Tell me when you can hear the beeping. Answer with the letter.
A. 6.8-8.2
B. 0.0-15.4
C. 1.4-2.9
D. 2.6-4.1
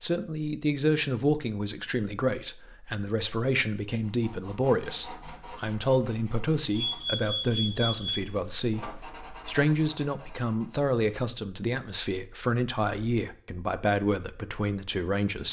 A.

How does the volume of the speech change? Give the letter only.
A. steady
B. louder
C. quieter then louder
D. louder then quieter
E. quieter
A.